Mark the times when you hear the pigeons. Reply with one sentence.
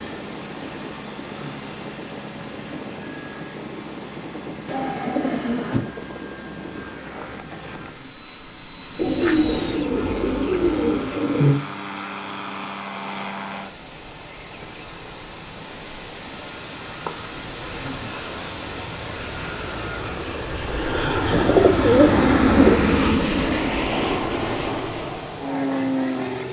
You can hear the pigeons from 4.7 to 5.8 s, from 8.9 to 11.6 s and from 21.3 to 22.9 s.